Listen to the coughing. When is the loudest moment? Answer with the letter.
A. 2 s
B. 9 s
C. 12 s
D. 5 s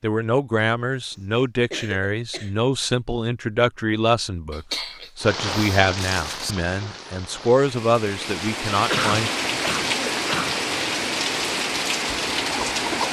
B.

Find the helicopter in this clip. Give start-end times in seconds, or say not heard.
not heard.